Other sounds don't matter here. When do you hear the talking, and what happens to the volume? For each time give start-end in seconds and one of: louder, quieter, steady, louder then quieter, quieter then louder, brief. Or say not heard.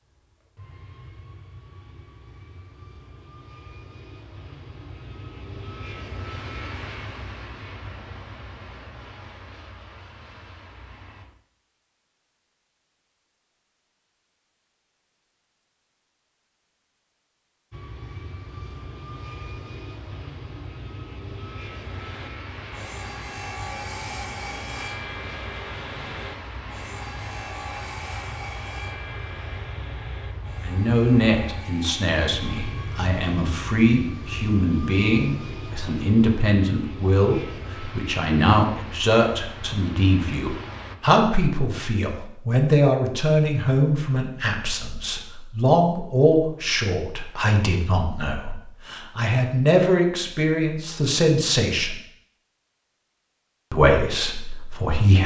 30.6-52.0 steady
53.7-55.2 brief.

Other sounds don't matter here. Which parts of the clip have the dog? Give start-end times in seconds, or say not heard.
not heard.